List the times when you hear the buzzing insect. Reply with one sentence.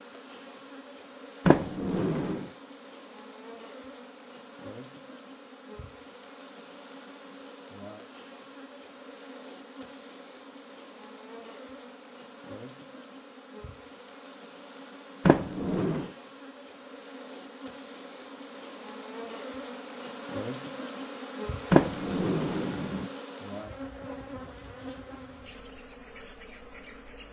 The buzzing insect can be heard from 0.0 to 27.2 s.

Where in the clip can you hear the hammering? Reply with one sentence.
The hammering can't be heard in this clip.